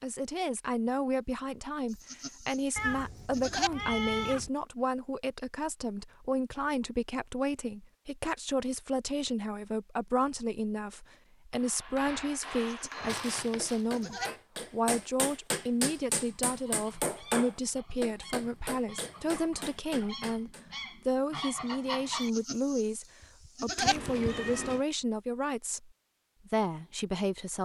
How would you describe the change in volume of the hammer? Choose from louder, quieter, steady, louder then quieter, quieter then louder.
louder then quieter.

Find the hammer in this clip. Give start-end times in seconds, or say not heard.
11.6-20.6.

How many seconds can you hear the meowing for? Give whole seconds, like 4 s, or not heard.
4 s.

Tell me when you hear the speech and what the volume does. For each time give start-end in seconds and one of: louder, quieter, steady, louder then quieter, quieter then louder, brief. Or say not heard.
0.0-27.5 steady.